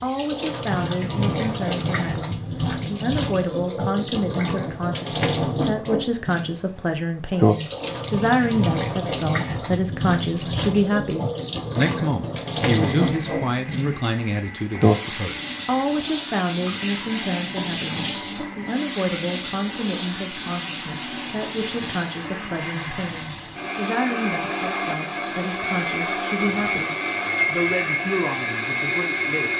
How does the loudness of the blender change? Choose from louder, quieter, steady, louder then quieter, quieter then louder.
louder.